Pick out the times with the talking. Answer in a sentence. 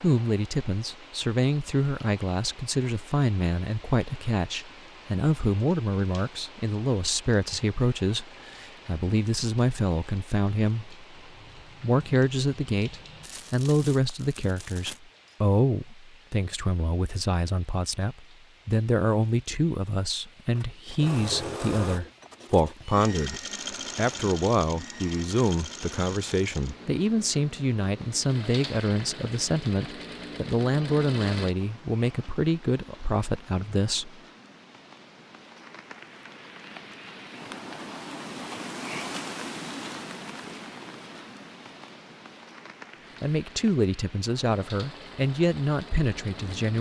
You can hear the talking from 0.0 to 10.9 s, from 11.8 to 34.1 s and from 43.2 to 46.7 s.